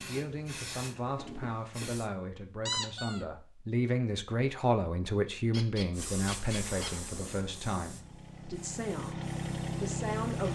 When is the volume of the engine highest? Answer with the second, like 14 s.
10 s.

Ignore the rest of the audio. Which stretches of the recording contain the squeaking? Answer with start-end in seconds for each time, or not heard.
2.6-3.2, 5.5-6.9.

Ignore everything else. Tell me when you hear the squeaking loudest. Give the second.
3 s.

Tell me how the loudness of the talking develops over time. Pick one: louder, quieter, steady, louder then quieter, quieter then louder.
louder then quieter.